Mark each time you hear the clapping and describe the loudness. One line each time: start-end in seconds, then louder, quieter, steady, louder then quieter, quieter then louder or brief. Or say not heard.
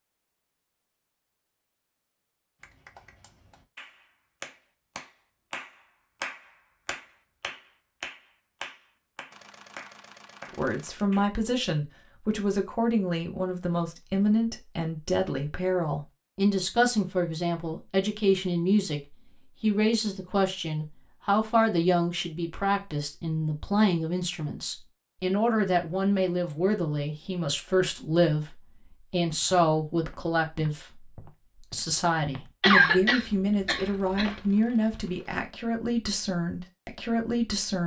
2.6-11.2 louder then quieter.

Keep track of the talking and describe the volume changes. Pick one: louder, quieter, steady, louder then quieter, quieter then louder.
steady.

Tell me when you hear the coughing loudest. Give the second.
33 s.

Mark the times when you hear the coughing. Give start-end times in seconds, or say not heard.
32.6-34.3.